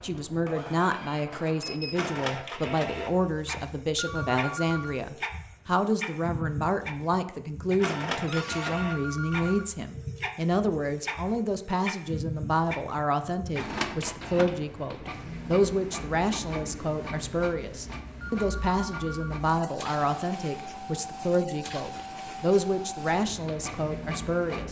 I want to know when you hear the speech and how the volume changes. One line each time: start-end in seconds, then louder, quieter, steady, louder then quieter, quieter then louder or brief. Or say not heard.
0.0-24.6 steady.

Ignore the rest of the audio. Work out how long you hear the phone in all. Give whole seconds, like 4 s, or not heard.
4 s.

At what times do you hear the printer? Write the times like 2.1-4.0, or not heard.
0.0-24.6.